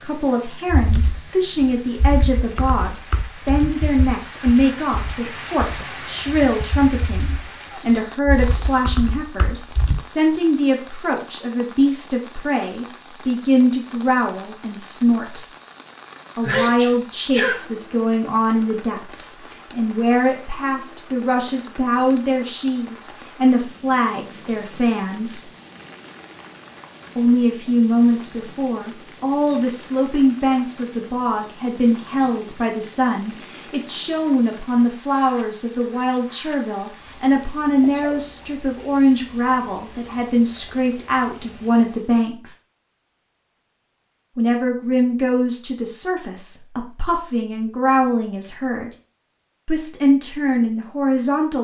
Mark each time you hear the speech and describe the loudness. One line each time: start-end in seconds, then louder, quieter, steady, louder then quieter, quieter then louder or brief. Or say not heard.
0.0-15.4 steady
16.4-25.4 steady
27.1-42.5 steady
44.4-48.9 quieter then louder
49.6-51.5 brief.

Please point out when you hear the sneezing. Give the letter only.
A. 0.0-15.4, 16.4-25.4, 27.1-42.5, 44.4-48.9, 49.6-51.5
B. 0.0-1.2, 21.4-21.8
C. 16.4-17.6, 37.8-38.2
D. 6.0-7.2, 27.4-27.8
C.